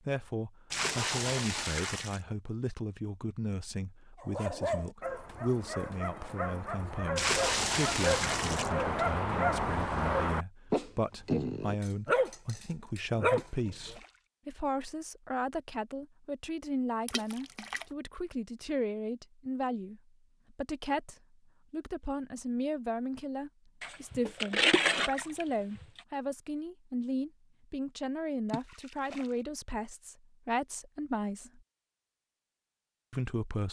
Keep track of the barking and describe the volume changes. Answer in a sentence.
The loudness of the barking goes up.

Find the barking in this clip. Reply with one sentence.
You can hear the barking from 4.2 to 13.9 s.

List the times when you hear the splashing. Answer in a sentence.
You can hear the splashing from 0.7 to 2.2 s, from 7.2 to 8.7 s, from 13.3 to 14.2 s, from 17.1 to 17.9 s, from 23.8 to 26.0 s and from 28.4 to 29.4 s.